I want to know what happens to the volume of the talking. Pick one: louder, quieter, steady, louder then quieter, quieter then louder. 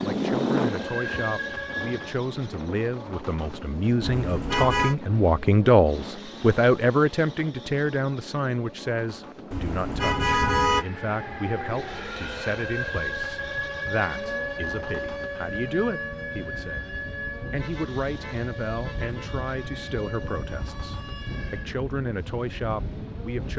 louder then quieter.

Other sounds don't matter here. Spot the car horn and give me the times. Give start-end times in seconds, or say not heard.
4.0-5.0, 9.5-10.8, 17.5-19.4.